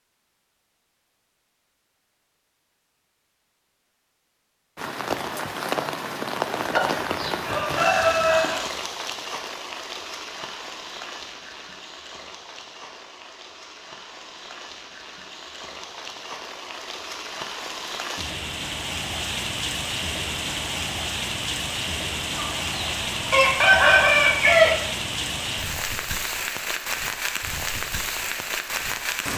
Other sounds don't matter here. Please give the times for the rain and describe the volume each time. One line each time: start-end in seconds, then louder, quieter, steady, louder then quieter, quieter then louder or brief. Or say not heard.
4.8-29.3 quieter then louder.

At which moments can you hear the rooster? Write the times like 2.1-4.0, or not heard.
6.7-8.6, 22.4-24.8.